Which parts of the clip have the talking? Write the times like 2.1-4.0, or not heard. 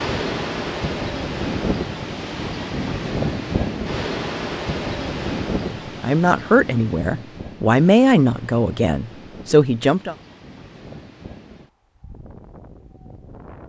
5.6-10.2.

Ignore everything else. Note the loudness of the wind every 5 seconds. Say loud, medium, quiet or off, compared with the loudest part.
loud, medium, quiet.